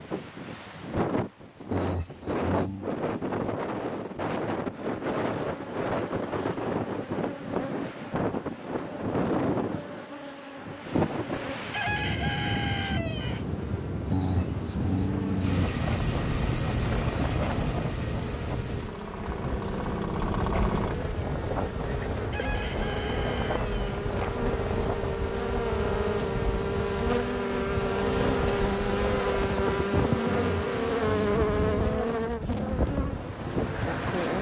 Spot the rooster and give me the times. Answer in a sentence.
You can hear the rooster from 11.7 to 13.4 s and from 22.3 to 23.9 s.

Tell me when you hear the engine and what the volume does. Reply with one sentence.
The engine can be heard from 15.4 to 20.9 s, getting quieter then louder.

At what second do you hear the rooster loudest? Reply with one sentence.
The volume of the rooster peaks at 12 seconds.